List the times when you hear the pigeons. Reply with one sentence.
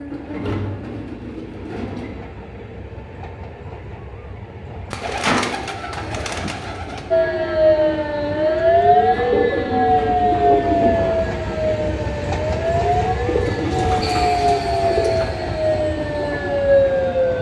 You can hear the pigeons from 0.1 to 2.1 s, from 4.9 to 7.0 s, from 8.9 to 11.3 s and from 13.2 to 15.3 s.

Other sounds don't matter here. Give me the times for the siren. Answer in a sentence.
You can hear the siren from 7.1 to 17.3 s.